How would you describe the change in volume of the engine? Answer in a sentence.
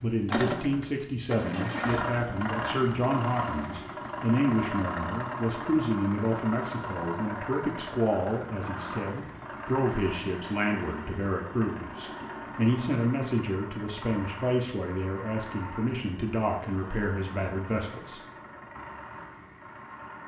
The loudness of the engine goes down.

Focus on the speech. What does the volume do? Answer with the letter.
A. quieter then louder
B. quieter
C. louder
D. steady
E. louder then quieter
D.